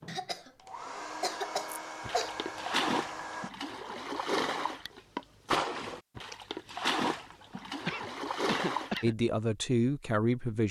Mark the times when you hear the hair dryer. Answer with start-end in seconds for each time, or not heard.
0.0-3.5.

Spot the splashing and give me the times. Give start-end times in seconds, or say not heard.
1.7-9.1.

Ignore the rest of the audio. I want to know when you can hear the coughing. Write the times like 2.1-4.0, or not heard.
0.1-2.4, 7.8-9.2.